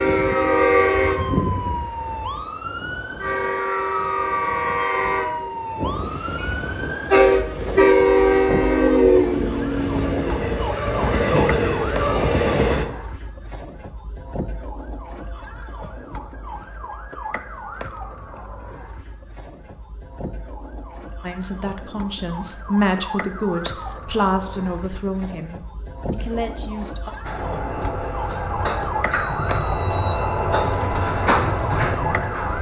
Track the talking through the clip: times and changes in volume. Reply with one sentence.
You can hear the talking from 21.2 to 27.1 s, getting louder then quieter.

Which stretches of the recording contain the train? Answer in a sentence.
The train can be heard from 0.0 to 12.8 s and from 27.2 to 32.5 s.